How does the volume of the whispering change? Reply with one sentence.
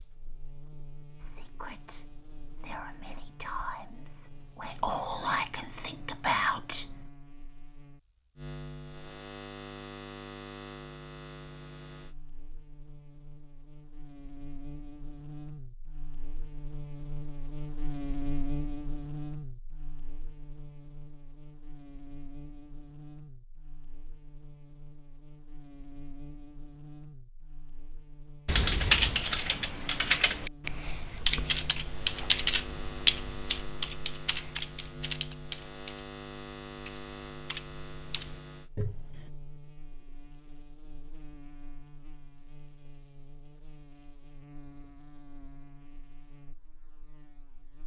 The loudness of the whispering goes up.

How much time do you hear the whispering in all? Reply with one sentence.
The whispering can be heard for 6 seconds in total.